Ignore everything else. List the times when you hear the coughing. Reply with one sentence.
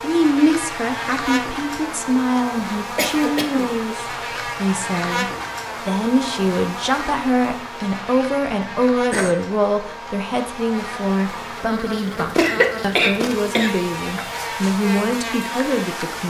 The coughing can be heard from 3.0 to 3.7 s, from 8.7 to 9.3 s and from 12.3 to 13.7 s.